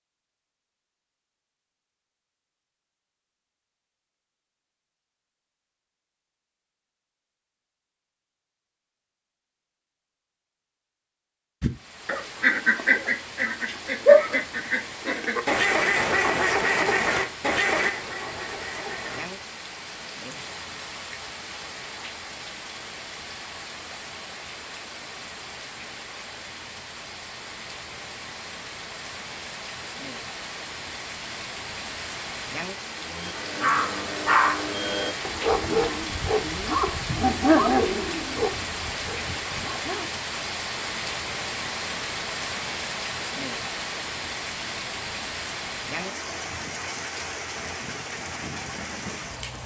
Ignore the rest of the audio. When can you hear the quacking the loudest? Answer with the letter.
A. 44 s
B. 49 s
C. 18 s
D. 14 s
D.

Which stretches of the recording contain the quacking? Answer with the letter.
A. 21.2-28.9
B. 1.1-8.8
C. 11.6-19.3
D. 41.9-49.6
C.